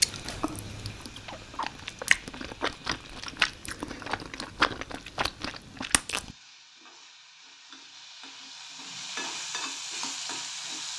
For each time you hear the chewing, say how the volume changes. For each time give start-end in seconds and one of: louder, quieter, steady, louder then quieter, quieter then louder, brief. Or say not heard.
0.0-6.3 louder then quieter.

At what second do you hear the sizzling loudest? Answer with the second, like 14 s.
10 s.